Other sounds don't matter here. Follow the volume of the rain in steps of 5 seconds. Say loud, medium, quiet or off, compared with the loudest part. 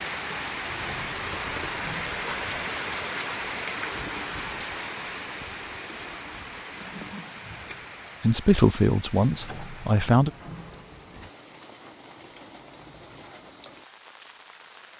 loud, medium, quiet.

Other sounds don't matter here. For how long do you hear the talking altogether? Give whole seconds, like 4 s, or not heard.
2 s.